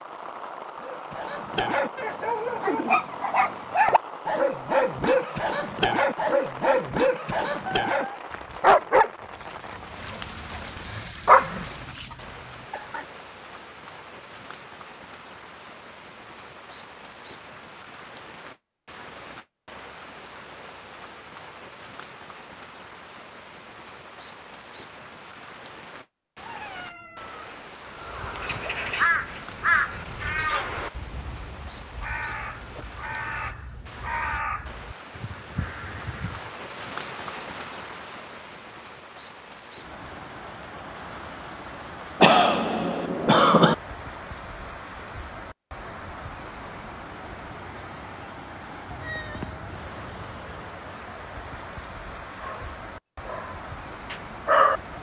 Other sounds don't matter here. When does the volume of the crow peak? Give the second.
30 s.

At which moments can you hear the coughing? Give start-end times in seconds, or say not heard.
42.2-43.8.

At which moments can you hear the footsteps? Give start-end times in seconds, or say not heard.
not heard.